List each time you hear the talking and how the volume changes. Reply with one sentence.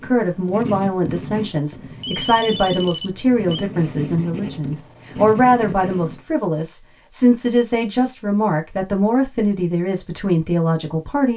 The talking can be heard from 0.0 to 11.3 s, at a steady volume.